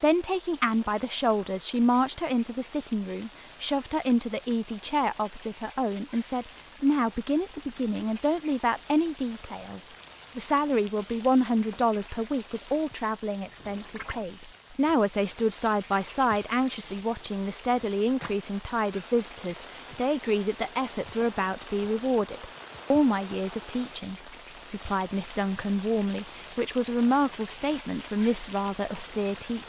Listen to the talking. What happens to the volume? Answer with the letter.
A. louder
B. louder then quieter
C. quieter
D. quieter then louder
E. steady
E.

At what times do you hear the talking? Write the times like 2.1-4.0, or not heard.
0.0-29.6.